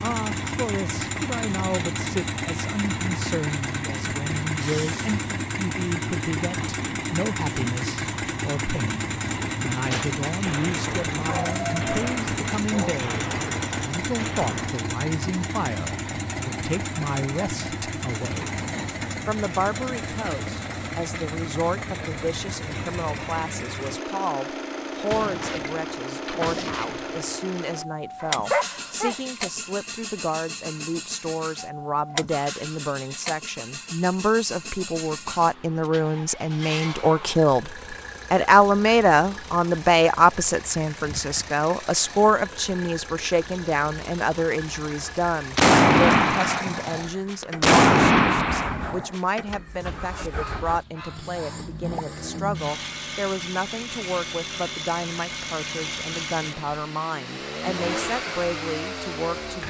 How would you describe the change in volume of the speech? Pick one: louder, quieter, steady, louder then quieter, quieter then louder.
louder then quieter.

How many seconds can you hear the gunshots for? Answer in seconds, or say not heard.
11 s.